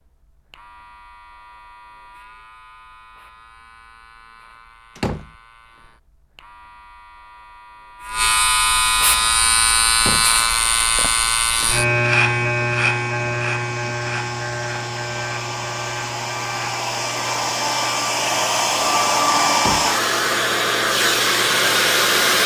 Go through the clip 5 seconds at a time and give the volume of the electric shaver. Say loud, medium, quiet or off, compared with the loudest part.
quiet, loud, loud, quiet, quiet.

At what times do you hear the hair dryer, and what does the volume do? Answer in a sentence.
The hair dryer can be heard from 9.2 to 22.4 s, getting louder.